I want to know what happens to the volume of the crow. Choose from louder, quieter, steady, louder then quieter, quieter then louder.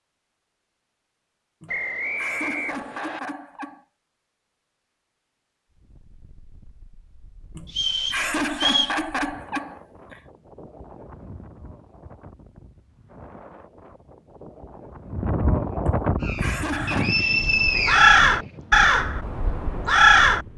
louder then quieter.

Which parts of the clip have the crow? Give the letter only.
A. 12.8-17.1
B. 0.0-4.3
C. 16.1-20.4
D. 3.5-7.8
C.